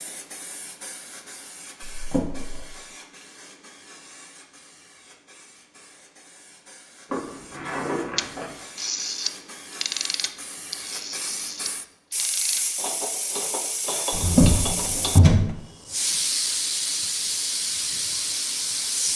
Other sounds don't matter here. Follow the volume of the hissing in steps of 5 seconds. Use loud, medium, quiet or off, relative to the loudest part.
quiet, quiet, medium, loud.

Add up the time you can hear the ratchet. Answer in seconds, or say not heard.
7 s.